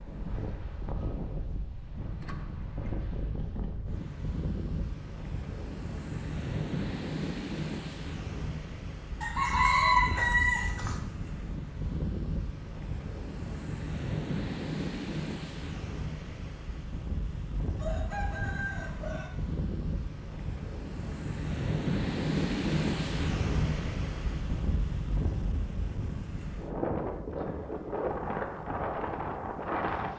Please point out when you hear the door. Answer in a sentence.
The door can't be heard in this clip.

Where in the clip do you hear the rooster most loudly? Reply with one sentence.
The loudest moment of the rooster is at 10 seconds.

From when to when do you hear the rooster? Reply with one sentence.
The rooster can be heard from 9.2 to 10.9 s and from 17.8 to 19.3 s.